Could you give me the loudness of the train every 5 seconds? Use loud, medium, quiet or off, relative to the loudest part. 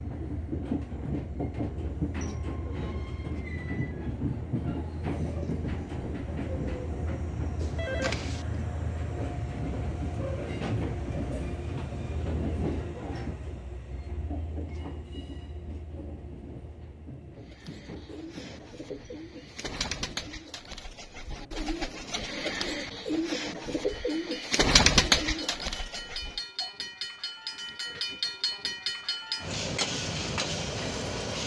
loud, loud, loud, quiet, quiet, loud, loud.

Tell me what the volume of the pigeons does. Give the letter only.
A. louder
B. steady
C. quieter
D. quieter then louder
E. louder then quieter
A.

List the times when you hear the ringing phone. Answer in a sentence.
You can hear the ringing phone from 7.6 to 8.4 s.